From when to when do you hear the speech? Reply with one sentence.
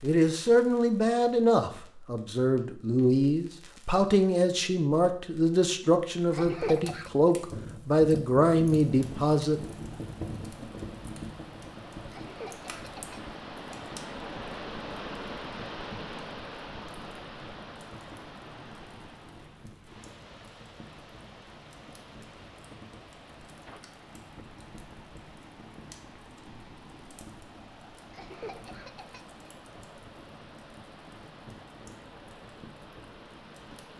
You can hear the speech from 0.0 to 9.6 s.